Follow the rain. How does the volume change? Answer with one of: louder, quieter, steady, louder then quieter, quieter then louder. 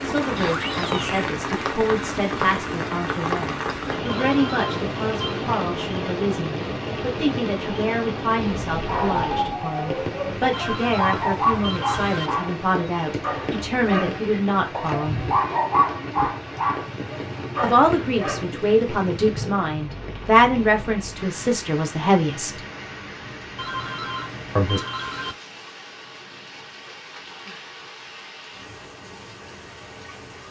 quieter.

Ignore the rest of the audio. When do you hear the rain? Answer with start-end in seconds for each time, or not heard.
0.0-30.4.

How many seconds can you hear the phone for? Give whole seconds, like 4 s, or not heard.
5 s.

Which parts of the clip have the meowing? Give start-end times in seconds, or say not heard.
0.3-1.2.